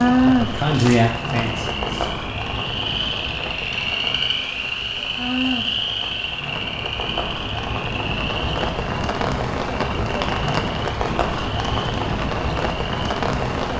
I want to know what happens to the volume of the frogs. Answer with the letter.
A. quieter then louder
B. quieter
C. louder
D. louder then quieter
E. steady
D.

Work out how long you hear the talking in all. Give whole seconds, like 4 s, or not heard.
2 s.